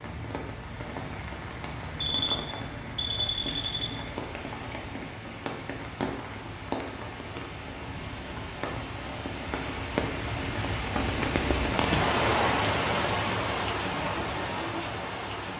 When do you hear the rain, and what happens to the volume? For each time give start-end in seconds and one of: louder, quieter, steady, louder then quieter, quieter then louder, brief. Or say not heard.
0.0-15.5 louder.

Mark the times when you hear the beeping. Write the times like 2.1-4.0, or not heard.
2.0-3.9.